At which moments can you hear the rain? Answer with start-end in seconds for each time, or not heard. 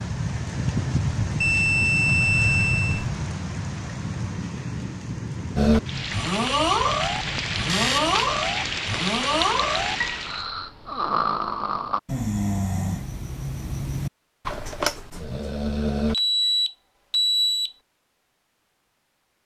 0.0-10.4.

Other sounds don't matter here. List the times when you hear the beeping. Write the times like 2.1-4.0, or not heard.
1.4-3.0, 7.7-8.2, 16.1-17.7.